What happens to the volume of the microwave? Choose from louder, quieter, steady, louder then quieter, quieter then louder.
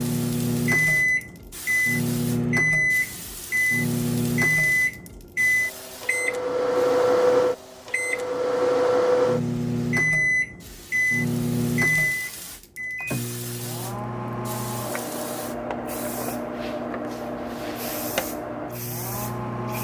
quieter.